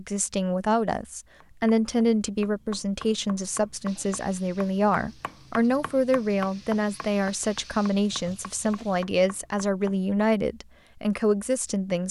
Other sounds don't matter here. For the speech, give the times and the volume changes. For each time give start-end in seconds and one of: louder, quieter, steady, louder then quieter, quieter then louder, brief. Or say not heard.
0.0-12.0 steady.